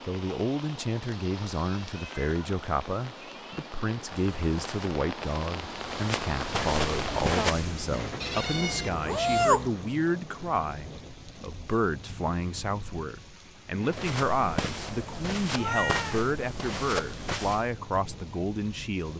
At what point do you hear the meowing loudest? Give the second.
9 s.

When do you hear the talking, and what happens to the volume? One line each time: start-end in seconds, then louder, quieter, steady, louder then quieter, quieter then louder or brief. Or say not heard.
0.1-19.1 steady.